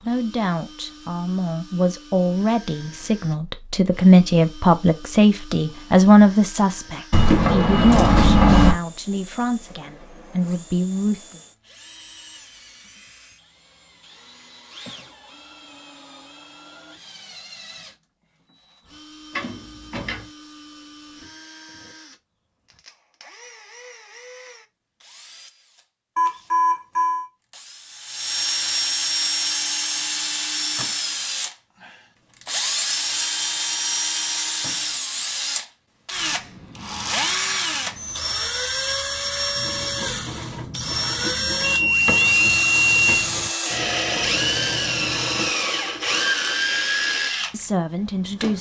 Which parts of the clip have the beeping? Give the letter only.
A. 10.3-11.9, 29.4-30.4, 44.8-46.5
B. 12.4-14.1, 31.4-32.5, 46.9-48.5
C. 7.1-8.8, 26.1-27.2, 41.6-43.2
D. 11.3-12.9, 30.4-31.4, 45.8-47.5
C.